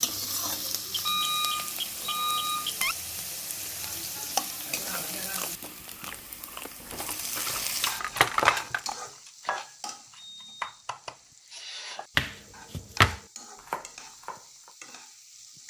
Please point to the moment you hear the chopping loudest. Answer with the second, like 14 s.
13 s.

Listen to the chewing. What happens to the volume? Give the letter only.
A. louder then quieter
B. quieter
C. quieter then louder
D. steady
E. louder
E.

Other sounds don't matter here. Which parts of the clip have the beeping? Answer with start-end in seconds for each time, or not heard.
0.9-3.0, 10.2-11.3.